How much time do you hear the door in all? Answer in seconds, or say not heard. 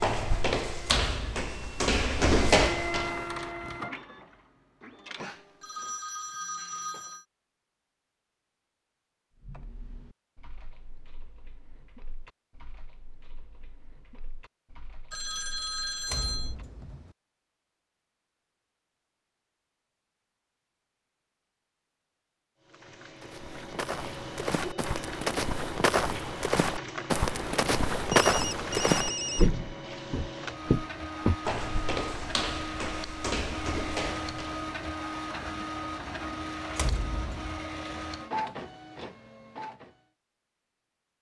3 s.